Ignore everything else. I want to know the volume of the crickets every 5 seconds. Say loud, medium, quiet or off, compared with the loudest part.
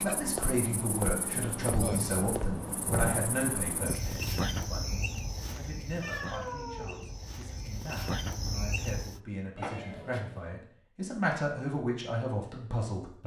loud, loud, off.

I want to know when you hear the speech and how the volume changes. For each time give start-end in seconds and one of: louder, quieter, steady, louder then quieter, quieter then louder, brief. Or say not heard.
0.0-13.2 quieter then louder.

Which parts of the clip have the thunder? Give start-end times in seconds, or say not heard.
1.7-3.3.